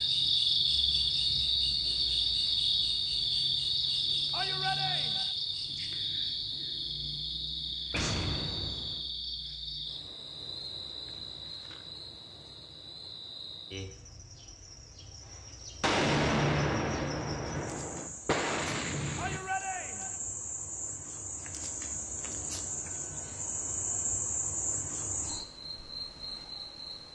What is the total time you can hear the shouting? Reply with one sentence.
The shouting can be heard for 2 seconds in total.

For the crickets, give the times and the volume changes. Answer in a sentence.
The crickets can be heard from 0.0 to 27.1 s, getting quieter then louder.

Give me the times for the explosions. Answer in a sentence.
The explosions can be heard from 7.9 to 9.0 s and from 15.8 to 19.4 s.